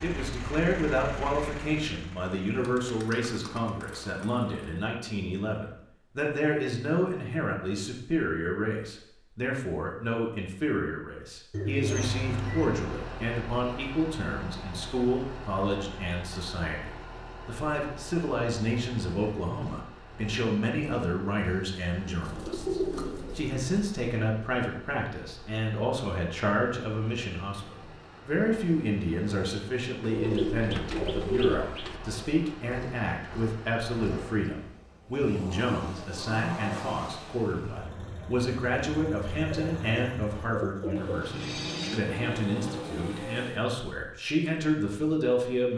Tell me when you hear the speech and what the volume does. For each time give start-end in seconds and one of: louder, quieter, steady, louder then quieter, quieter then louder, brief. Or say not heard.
0.0-45.7 steady.